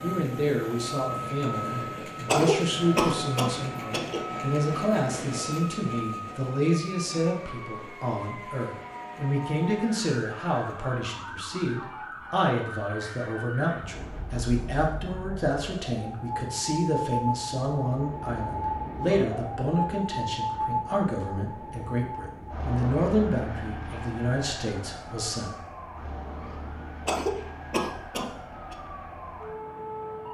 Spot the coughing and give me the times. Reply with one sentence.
You can hear the coughing from 2.2 to 4.2 s and from 27.1 to 28.8 s.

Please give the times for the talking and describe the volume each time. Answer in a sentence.
You can hear the talking from 0.0 to 25.6 s, at a steady volume.